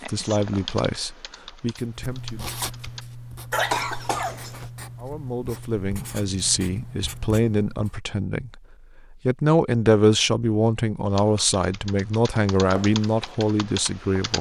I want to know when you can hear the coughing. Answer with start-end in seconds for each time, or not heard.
3.5-4.7.